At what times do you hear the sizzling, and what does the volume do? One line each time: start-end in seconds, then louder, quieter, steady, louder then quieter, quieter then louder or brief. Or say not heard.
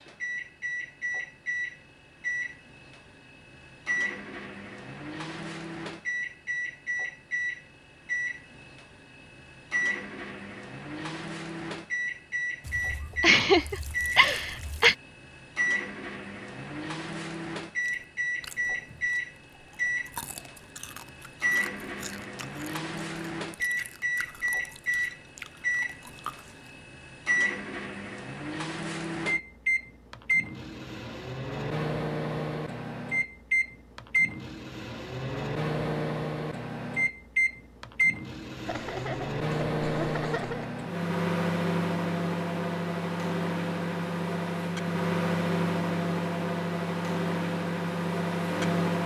not heard.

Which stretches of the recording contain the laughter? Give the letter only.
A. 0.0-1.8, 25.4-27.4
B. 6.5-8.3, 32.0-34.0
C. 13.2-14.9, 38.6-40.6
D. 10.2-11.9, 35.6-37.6
C.